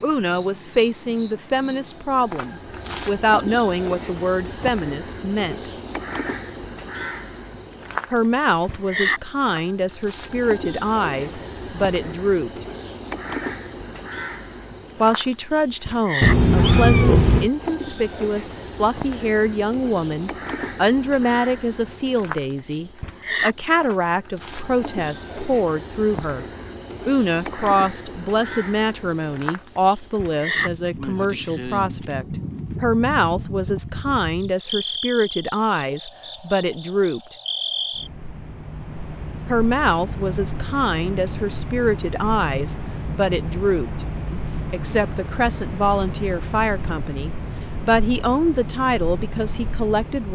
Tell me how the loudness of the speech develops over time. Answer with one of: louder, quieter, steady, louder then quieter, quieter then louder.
steady.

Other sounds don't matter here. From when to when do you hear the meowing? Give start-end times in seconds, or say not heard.
16.2-17.5.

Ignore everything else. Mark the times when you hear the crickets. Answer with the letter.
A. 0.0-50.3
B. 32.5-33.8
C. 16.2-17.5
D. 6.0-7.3
A.